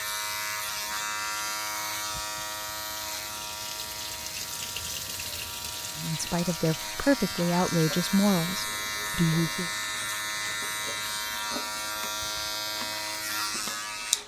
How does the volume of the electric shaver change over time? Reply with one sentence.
The loudness of the electric shaver goes down, then up.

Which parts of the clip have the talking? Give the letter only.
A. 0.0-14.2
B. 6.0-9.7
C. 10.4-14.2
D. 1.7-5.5
B.